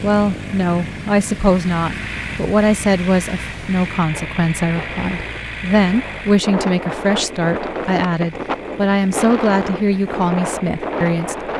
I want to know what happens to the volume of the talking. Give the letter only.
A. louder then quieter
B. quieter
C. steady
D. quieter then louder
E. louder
C.